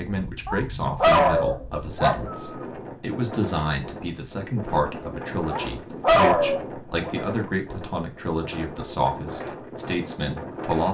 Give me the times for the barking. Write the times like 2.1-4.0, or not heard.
0.5-2.4, 5.5-7.2.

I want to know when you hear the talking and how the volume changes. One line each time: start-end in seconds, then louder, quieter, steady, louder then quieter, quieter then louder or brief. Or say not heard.
0.0-10.9 steady.